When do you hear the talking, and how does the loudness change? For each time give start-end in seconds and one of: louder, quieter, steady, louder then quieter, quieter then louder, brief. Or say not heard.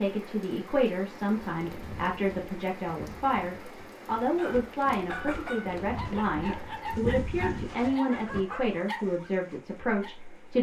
0.0-10.5 steady.